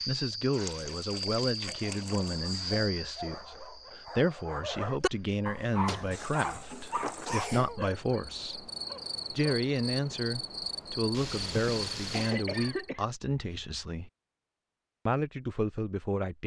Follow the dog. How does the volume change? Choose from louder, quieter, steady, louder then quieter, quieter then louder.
louder then quieter.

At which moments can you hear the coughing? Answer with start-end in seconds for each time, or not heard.
2.0-2.8, 5.9-7.8, 11.6-13.1.